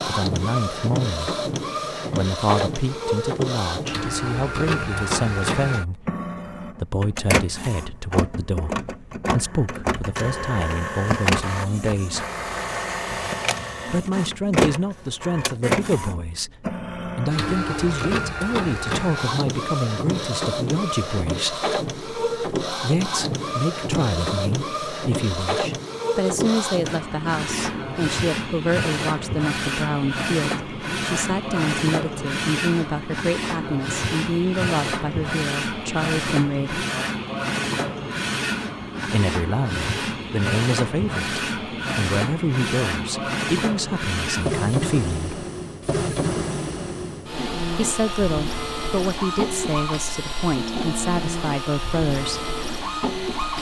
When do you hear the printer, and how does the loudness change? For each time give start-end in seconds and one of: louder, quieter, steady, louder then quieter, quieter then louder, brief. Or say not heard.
0.0-53.5 steady.